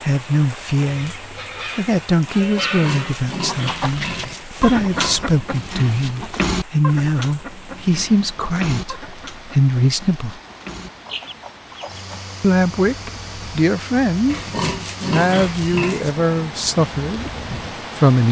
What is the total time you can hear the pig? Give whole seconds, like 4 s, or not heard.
5 s.